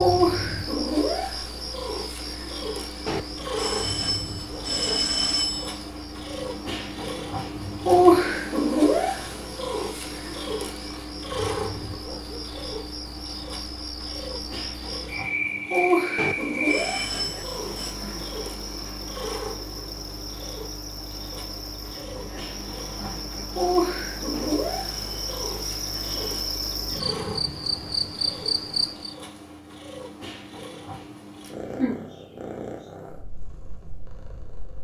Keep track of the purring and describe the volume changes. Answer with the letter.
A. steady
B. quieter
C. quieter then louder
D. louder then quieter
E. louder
D.